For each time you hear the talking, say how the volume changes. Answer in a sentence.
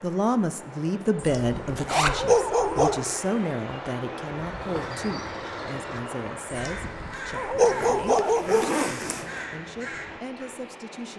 You can hear the talking from 0.0 to 11.1 s, getting quieter.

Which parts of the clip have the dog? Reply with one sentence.
You can hear the dog from 1.2 to 3.0 s and from 6.5 to 8.7 s.